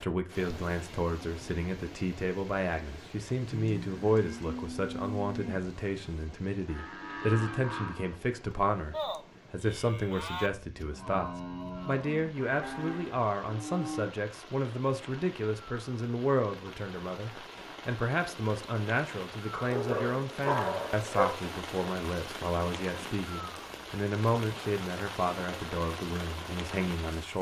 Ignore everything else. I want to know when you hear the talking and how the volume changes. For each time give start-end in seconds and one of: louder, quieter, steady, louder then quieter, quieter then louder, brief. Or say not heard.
0.0-27.3 steady.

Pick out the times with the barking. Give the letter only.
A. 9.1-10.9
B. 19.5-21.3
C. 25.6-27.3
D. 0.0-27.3
B.